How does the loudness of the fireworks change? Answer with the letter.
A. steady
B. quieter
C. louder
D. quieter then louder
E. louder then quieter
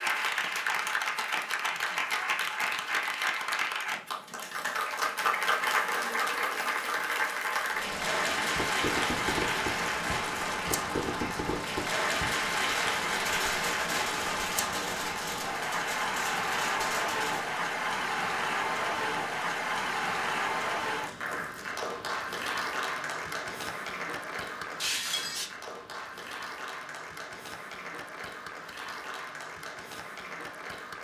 A.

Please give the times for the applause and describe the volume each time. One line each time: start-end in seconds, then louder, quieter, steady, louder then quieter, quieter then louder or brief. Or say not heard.
0.0-30.9 quieter.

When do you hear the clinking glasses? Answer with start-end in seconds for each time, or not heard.
24.8-25.5.